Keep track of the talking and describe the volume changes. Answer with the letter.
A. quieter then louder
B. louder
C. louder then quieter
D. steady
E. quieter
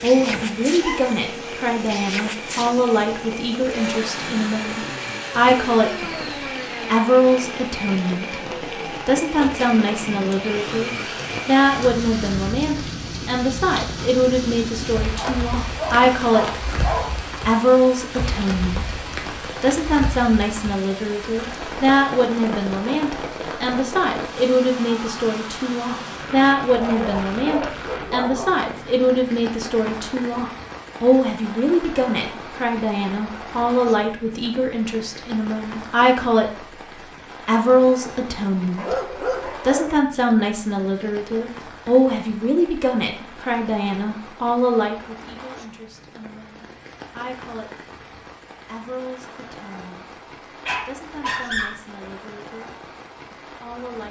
E.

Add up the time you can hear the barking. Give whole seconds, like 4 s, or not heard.
7 s.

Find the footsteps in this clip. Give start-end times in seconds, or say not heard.
not heard.